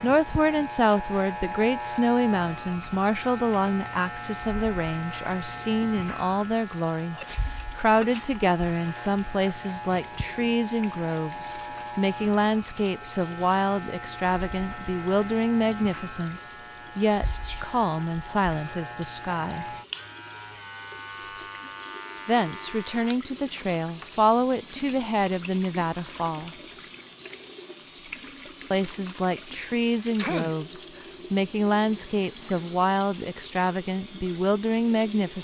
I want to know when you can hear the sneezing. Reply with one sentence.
You can hear the sneezing from 7.1 to 8.2 s, from 17.2 to 17.8 s and from 30.1 to 30.6 s.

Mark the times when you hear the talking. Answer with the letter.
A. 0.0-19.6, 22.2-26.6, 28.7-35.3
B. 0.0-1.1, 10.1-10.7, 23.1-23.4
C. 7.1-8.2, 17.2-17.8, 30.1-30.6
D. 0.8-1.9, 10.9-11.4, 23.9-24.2
A.